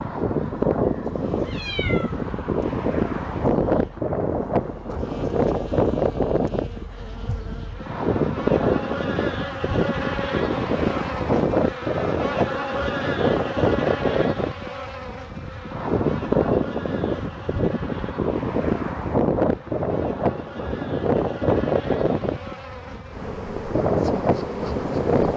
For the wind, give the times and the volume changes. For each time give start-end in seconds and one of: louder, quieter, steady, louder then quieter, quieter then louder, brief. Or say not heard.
0.0-25.3 steady.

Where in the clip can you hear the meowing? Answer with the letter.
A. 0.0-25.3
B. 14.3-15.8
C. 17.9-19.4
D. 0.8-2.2
D.